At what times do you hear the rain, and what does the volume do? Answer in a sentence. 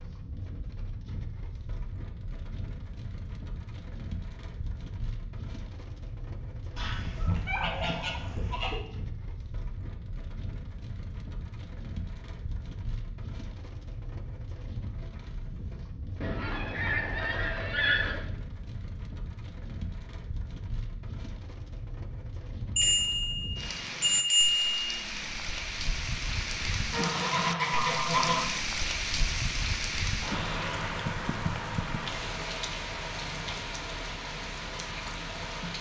You can hear the rain from 0.0 to 35.7 s, getting louder.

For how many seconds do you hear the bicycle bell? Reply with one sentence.
The bicycle bell can be heard for 2 seconds in total.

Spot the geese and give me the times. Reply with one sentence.
The geese can be heard from 6.8 to 8.8 s, from 16.2 to 18.2 s and from 26.9 to 28.5 s.